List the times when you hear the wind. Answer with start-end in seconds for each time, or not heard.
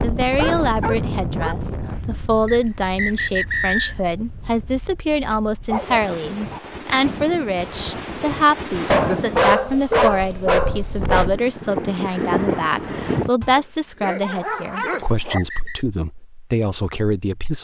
0.0-13.3.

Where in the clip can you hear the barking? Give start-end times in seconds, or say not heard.
0.3-1.6, 5.3-6.6, 8.9-11.3, 13.4-15.4.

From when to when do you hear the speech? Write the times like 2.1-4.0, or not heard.
0.0-17.5.